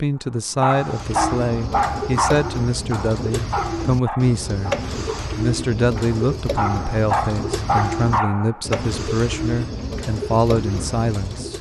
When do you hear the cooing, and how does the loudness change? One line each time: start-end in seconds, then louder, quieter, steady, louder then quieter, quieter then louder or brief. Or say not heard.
0.7-11.5 steady.